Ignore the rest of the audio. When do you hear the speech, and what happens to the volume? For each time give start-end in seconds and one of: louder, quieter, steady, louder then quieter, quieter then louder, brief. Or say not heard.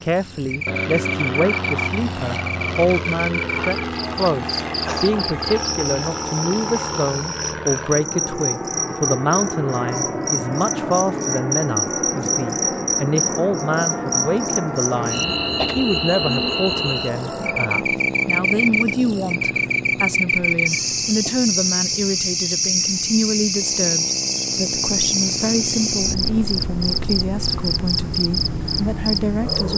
0.0-29.7 steady.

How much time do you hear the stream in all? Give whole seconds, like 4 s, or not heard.
not heard.